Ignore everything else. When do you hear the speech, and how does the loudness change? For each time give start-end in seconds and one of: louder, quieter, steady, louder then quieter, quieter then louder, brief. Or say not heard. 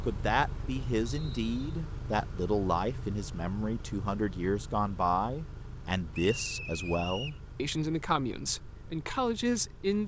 0.0-10.0 steady.